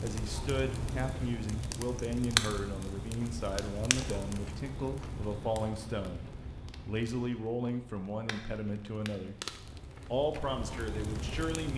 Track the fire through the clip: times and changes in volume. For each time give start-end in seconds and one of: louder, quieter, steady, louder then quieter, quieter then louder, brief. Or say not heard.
0.0-11.7 quieter then louder.